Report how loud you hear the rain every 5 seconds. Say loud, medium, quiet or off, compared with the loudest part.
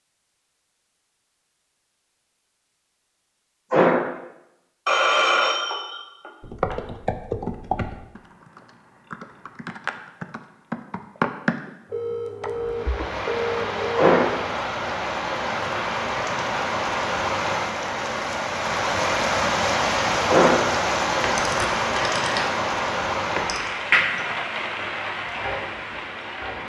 off, off, medium, loud, loud, medium.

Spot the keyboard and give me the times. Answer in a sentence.
You can hear the keyboard from 6.4 to 13.2 s.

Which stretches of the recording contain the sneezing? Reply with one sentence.
The sneezing can be heard from 3.7 to 4.2 s, from 13.9 to 14.4 s and from 20.2 to 20.7 s.